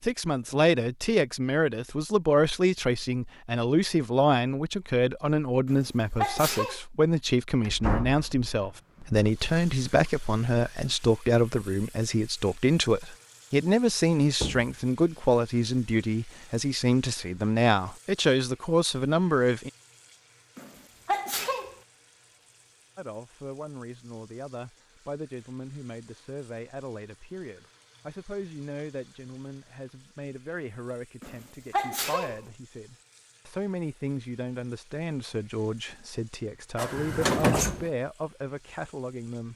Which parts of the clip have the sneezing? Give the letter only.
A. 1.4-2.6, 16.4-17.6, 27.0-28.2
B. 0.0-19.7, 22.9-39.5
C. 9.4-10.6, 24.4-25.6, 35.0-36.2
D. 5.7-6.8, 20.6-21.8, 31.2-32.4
D.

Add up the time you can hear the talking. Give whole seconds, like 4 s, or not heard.
36 s.